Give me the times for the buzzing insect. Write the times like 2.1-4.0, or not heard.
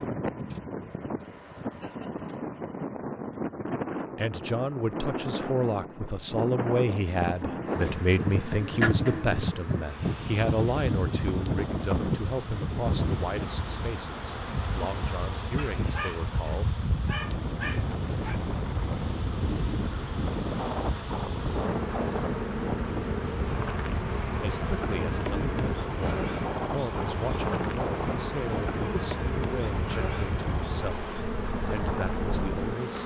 7.7-33.0.